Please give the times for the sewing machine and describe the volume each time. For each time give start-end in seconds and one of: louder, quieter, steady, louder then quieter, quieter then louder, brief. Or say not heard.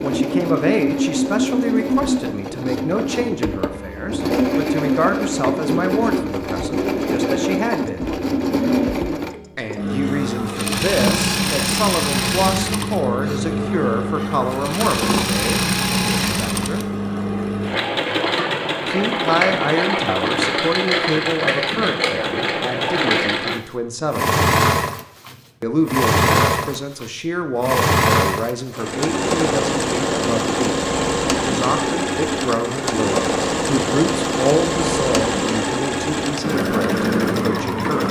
0.0-38.0 steady.